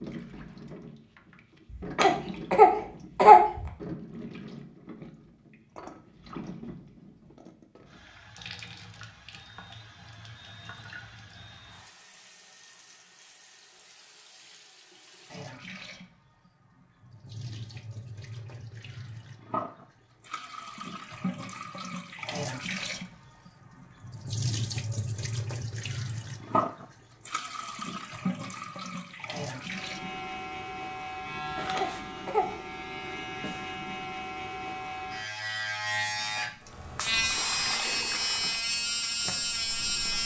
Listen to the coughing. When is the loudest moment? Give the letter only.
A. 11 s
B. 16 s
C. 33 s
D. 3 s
D.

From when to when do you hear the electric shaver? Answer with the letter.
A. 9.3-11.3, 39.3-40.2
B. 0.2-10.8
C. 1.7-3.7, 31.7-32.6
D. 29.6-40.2
D.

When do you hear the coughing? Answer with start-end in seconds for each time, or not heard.
1.7-3.7, 31.7-32.6.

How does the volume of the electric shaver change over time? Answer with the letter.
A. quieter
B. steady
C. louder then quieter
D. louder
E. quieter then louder
D.